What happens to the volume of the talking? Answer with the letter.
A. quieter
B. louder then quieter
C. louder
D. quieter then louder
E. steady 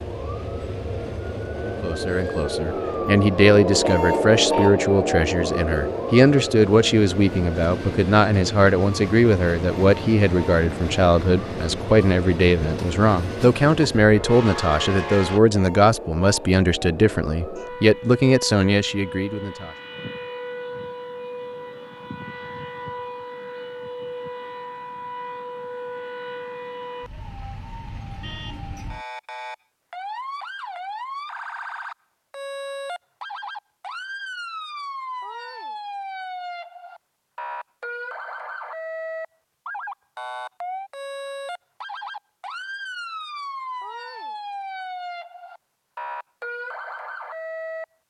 E.